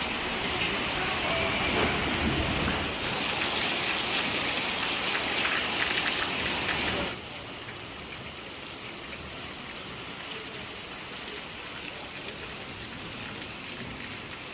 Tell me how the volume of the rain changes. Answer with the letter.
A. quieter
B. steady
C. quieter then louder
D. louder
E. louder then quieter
A.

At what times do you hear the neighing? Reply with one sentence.
You can hear the neighing from 1.2 to 3.2 s.